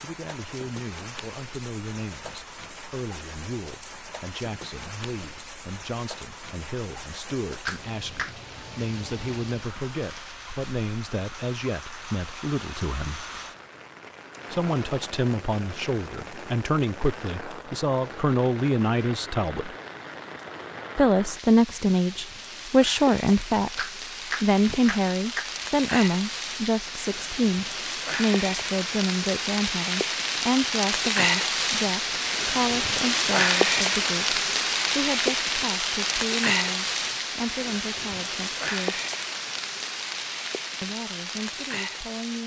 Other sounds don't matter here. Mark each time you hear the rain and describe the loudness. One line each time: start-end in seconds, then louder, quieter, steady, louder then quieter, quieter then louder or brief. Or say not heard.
0.0-42.4 louder.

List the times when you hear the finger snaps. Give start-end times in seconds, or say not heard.
7.7-8.3, 23.8-25.5.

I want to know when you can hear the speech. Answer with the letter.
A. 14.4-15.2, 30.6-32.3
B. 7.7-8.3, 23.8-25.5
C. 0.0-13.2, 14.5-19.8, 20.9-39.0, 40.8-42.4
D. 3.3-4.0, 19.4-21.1
C.